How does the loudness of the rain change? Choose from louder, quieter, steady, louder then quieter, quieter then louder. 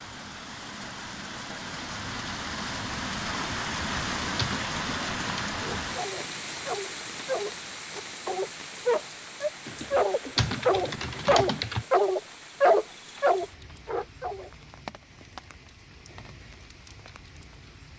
quieter.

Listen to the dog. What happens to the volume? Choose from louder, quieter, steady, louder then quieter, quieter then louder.
louder.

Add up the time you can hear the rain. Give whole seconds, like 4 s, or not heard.
18 s.